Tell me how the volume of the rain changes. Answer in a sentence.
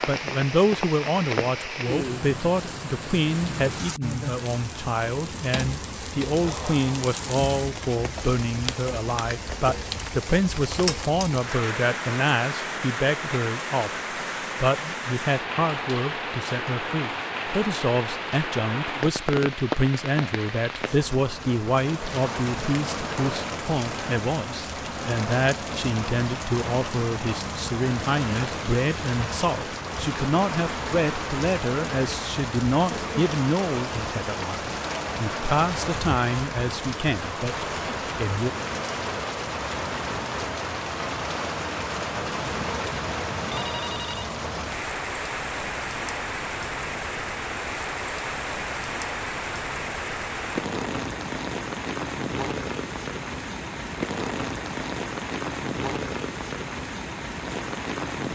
The loudness of the rain stays about the same.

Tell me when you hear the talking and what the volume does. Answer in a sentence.
You can hear the talking from 0.1 to 13.9 s, at a steady volume; and from 14.6 to 38.5 s, at a steady volume.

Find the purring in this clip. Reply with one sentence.
You can't hear the purring here.